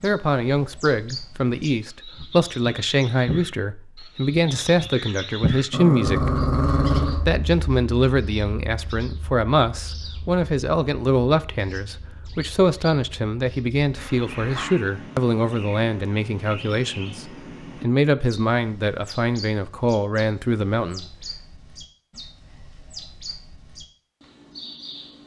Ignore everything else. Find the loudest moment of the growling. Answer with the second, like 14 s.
7 s.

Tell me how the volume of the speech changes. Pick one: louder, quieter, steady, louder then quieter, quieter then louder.
steady.